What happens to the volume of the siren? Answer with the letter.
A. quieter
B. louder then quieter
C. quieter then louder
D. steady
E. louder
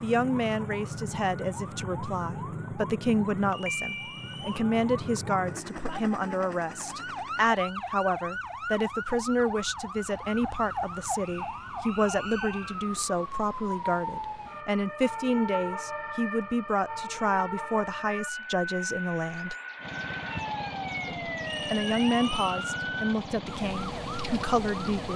D.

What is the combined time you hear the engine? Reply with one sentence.
The engine can be heard for 5 seconds in total.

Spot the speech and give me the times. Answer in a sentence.
The speech can be heard from 0.0 to 19.6 s and from 21.1 to 25.1 s.